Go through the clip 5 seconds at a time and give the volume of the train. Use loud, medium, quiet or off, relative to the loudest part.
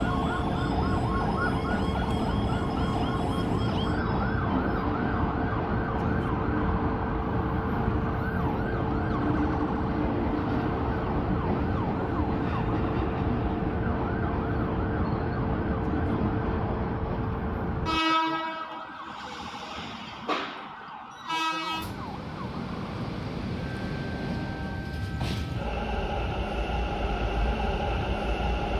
loud, loud, loud, loud, medium, loud.